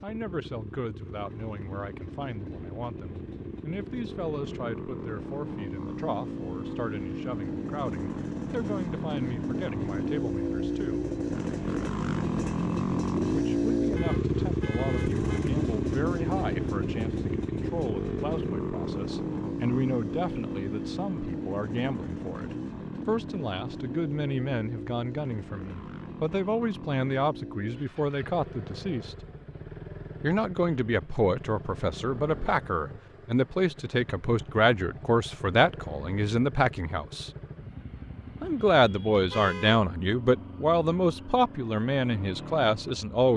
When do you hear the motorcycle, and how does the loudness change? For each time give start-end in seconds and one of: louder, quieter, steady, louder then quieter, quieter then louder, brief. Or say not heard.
0.0-43.3 louder then quieter.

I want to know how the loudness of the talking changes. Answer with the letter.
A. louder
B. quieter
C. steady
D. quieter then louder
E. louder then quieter
A.